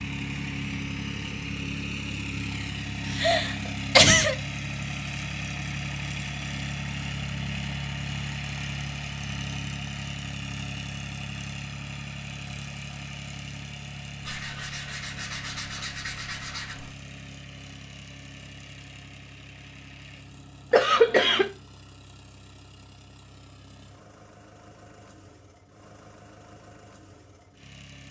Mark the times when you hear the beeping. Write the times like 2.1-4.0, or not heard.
not heard.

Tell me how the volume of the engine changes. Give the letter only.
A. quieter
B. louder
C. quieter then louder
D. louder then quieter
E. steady
A.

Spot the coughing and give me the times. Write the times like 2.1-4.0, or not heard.
3.0-4.3, 20.7-21.5.